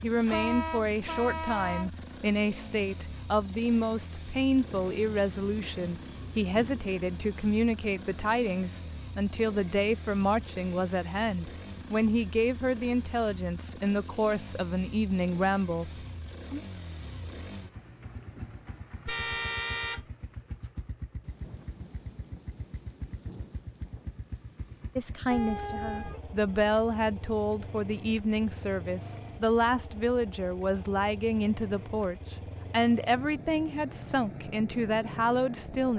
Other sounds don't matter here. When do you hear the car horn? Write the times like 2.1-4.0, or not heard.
0.2-1.9, 19.1-20.1, 25.3-26.2.